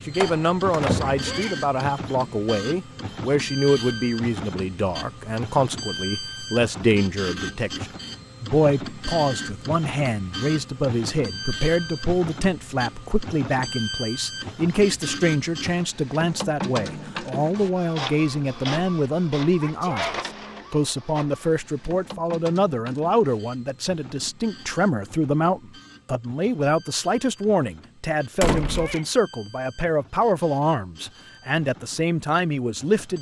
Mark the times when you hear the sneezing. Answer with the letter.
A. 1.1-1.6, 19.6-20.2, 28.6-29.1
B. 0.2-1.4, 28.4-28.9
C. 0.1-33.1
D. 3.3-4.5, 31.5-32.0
A.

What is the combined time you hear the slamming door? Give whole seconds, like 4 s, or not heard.
2 s.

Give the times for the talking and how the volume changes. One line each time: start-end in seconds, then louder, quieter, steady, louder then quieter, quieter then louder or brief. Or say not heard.
0.1-33.1 steady.